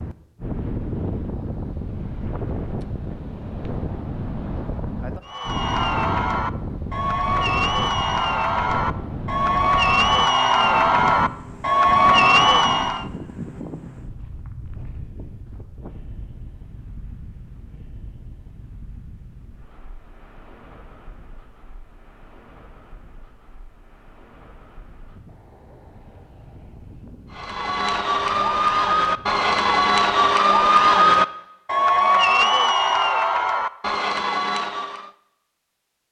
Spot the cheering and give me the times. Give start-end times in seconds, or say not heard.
5.2-13.1, 27.3-35.1.